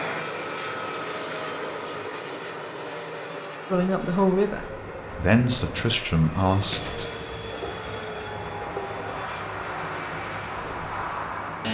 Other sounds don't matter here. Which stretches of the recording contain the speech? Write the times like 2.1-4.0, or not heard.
3.7-7.0.